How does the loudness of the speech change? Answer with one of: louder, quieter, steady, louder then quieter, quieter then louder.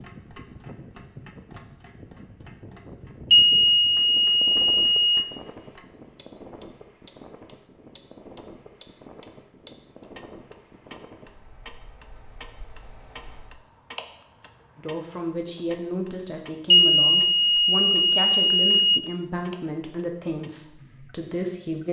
steady.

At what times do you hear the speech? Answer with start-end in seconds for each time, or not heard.
14.8-21.8.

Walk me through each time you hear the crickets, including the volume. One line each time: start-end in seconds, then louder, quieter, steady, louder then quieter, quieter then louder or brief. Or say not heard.
not heard.